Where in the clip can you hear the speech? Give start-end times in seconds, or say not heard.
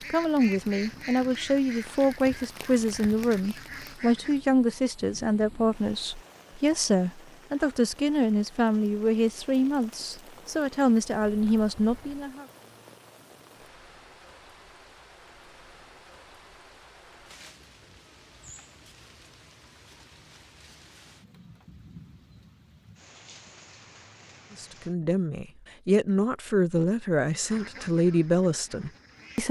0.1-12.4, 24.6-29.4.